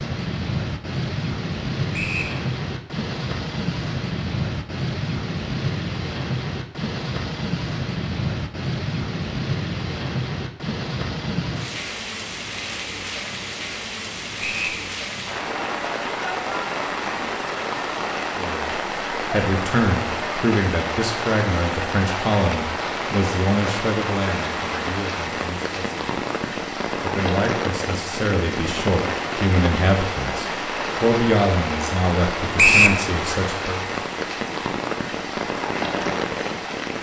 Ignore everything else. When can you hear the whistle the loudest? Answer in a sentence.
The volume of the whistle peaks at 33 seconds.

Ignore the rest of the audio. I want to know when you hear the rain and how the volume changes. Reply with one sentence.
You can hear the rain from 0.0 to 36.9 s, at a steady volume.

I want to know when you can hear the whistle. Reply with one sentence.
You can hear the whistle from 1.9 to 2.4 s, from 14.4 to 14.8 s and from 32.5 to 33.0 s.